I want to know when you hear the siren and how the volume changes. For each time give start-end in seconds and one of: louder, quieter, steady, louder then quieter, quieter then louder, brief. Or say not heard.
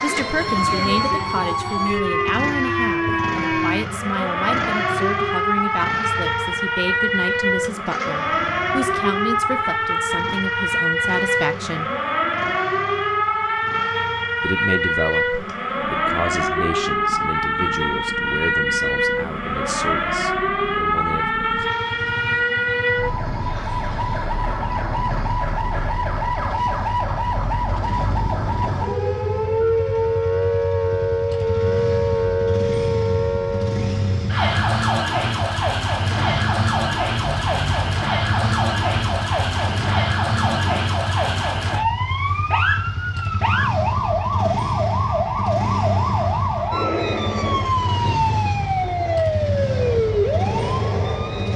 0.0-51.5 steady.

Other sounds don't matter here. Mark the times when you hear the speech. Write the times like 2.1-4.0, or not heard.
0.0-11.9, 14.4-21.6.